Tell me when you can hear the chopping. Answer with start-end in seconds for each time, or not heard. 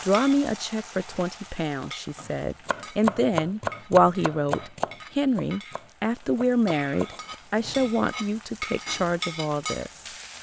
2.2-7.8.